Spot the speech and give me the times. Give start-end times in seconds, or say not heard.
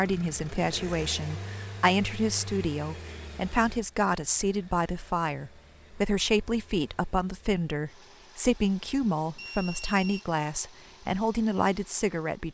0.0-12.4.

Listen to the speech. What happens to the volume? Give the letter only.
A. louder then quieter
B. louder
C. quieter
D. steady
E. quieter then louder
D.